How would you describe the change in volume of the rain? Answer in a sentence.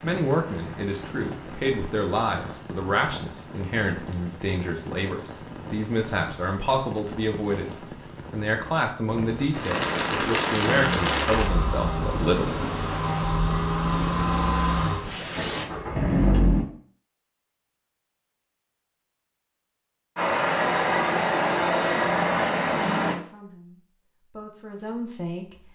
The loudness of the rain goes up, then down.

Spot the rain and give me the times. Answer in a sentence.
The rain can be heard from 0.0 to 15.7 s.